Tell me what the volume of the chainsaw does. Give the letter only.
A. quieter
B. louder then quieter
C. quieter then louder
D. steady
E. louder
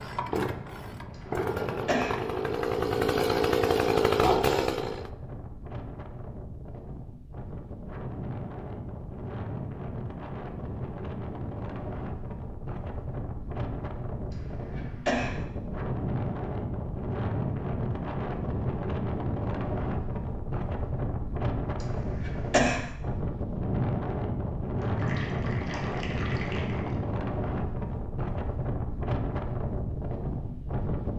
E.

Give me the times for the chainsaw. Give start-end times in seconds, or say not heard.
0.0-5.1.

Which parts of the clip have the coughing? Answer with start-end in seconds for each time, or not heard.
1.1-2.2, 14.3-15.3, 21.8-22.9.